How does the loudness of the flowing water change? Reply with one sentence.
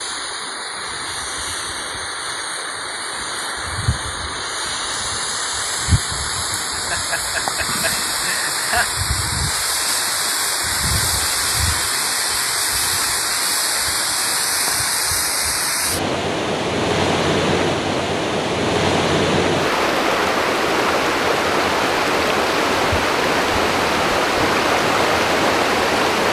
The volume of the flowing water goes up.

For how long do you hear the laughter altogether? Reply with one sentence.
The laughter can be heard for 2 seconds in total.